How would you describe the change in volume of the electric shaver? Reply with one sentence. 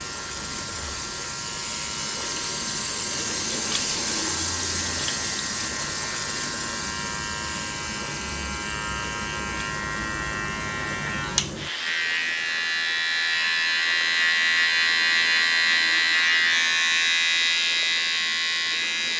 The loudness of the electric shaver goes up.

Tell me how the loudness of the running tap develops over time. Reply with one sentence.
The volume of the running tap goes down.